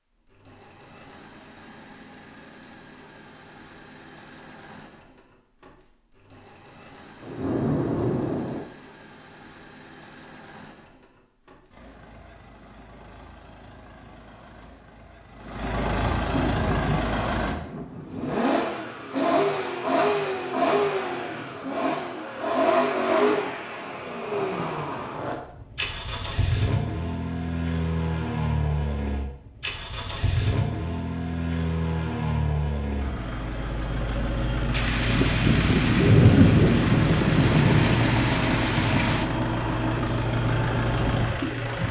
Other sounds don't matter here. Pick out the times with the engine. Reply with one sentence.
The engine can be heard from 0.1 to 41.8 s.